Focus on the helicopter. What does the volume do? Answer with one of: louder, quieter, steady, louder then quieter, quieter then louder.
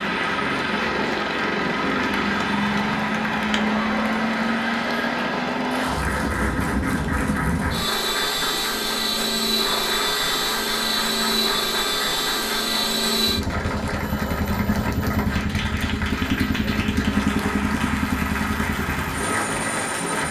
steady.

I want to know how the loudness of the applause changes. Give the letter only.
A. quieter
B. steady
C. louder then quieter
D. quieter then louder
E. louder
B.